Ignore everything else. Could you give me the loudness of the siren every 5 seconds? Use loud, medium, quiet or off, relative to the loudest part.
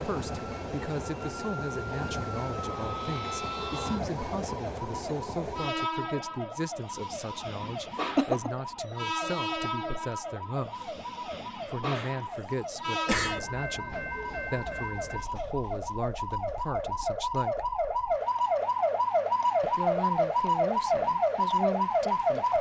quiet, quiet, quiet, loud, loud.